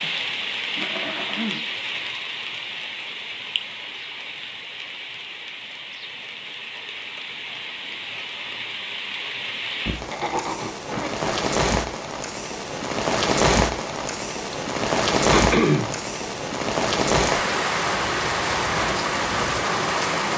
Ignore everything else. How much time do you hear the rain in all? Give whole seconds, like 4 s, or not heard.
20 s.